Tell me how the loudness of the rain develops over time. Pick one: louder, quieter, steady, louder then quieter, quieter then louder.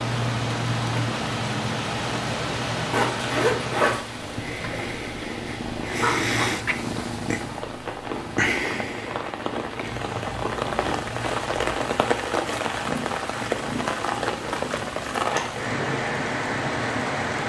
quieter then louder.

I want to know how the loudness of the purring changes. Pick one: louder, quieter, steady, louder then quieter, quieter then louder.
quieter.